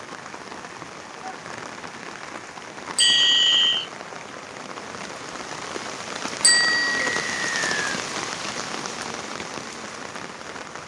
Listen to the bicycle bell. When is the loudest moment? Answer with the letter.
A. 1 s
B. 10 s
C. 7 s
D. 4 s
C.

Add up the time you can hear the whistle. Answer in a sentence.
The whistle can be heard for 2 seconds in total.